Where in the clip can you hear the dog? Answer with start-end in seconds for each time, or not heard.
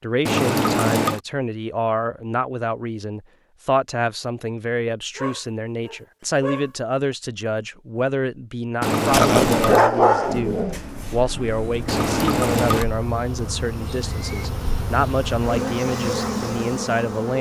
5.2-7.2, 9.1-11.9.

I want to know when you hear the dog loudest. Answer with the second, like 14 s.
10 s.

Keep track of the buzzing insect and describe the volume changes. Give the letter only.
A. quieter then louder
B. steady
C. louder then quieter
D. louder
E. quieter
D.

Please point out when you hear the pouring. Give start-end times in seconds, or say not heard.
0.2-1.2, 8.8-9.9, 11.8-12.8.